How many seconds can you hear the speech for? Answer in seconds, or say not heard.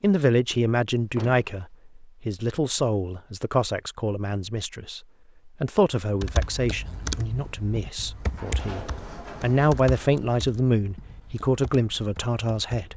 13 s.